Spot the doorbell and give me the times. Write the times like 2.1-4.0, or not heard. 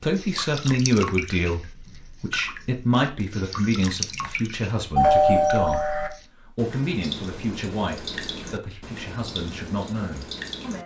5.0-6.1.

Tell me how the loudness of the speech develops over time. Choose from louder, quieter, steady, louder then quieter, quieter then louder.
quieter.